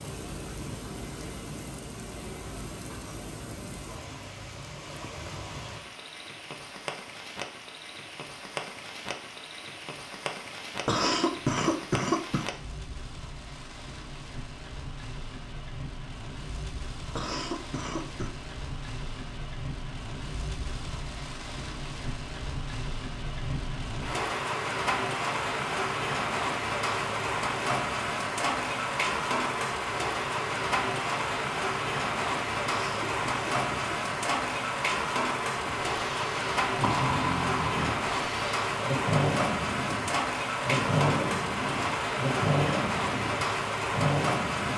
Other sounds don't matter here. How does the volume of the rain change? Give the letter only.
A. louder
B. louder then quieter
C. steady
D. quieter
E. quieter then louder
A.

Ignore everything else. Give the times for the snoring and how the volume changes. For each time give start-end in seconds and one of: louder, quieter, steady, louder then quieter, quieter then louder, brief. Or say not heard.
35.6-44.7 steady.